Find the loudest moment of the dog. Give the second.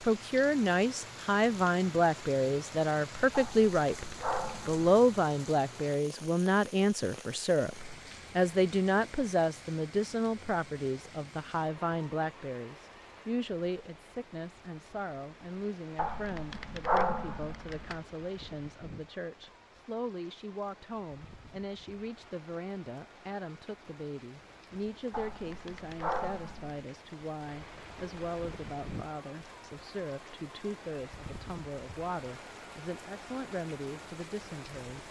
17 s.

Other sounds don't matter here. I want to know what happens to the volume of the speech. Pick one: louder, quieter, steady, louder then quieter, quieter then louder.
quieter.